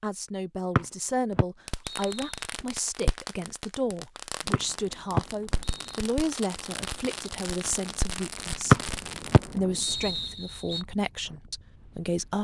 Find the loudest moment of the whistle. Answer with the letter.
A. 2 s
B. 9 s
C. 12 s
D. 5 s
B.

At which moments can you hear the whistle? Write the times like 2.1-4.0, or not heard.
0.8-2.4, 4.5-6.0, 8.7-10.8.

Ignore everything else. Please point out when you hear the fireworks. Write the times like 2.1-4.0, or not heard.
1.6-9.6.